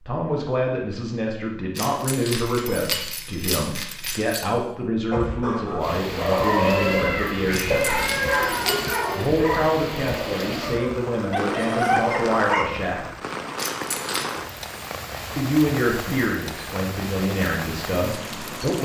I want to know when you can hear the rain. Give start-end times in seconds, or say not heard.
5.8-18.8.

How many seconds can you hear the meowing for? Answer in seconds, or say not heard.
2 s.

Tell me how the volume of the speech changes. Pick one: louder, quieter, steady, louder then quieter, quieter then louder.
steady.